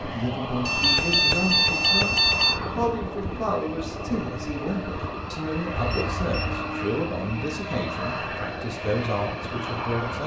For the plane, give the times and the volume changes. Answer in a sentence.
You can hear the plane from 0.0 to 10.2 s, at a steady volume.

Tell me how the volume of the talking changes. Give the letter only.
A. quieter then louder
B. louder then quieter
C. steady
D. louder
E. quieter
C.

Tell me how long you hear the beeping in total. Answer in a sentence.
You can hear the beeping for 3 seconds altogether.